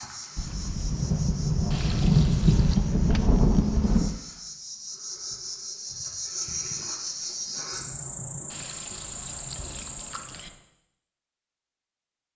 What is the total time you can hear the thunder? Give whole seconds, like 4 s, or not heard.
4 s.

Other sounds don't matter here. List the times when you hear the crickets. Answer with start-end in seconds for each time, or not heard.
0.0-10.6.